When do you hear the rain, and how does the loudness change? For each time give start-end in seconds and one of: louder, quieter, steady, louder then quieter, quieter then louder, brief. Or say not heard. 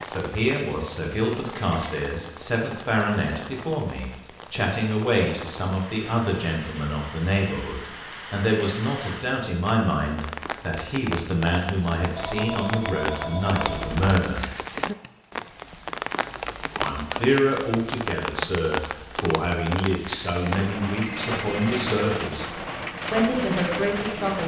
0.0-24.4 louder.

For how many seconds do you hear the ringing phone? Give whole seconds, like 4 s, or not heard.
3 s.